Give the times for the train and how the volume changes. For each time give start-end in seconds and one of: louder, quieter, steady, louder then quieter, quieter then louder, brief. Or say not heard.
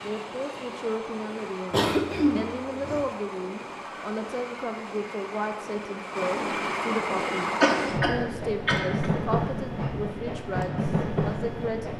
0.0-11.9 louder.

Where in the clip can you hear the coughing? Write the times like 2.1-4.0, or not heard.
1.7-3.0, 7.2-9.1.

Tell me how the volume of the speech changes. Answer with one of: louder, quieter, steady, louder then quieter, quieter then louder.
steady.